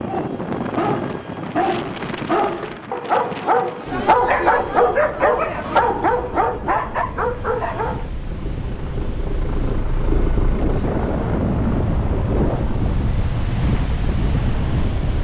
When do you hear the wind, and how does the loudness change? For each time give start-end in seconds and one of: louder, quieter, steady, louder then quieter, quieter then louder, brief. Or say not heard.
0.0-15.1 quieter then louder.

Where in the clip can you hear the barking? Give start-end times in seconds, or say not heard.
0.1-8.1.